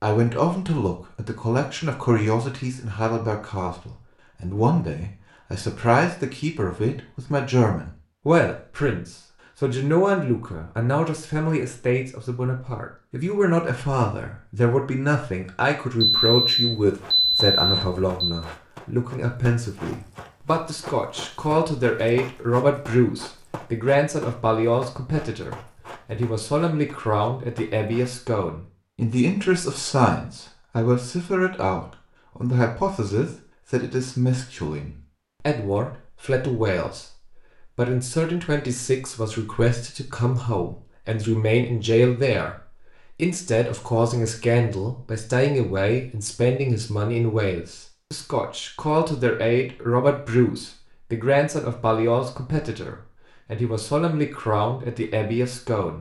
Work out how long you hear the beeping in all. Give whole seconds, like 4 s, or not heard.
2 s.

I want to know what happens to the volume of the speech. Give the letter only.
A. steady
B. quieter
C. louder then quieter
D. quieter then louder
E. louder
A.